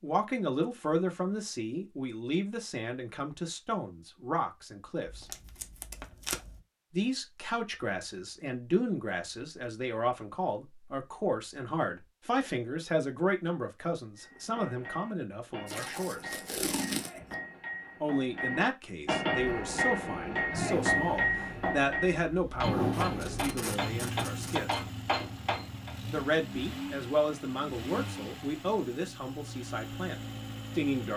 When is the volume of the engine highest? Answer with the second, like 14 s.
23 s.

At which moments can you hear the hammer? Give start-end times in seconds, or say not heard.
14.2-25.9.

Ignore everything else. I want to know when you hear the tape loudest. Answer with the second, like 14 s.
17 s.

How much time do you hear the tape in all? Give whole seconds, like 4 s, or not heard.
5 s.